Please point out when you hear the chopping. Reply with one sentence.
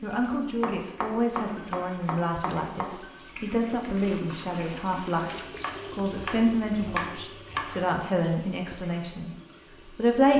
The chopping can be heard from 0.3 to 3.0 s and from 5.6 to 8.0 s.